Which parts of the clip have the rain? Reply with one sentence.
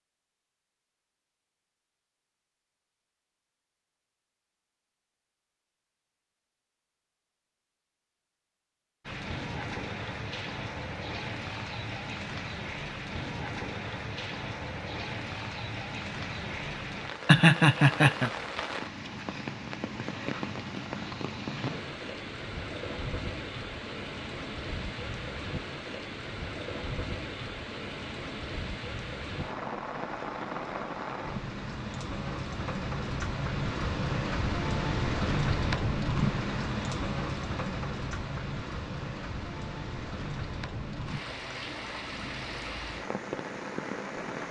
You can hear the rain from 9.1 to 44.4 s.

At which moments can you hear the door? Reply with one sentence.
You can't hear the door here.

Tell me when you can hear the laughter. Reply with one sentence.
You can hear the laughter from 17.2 to 18.3 s.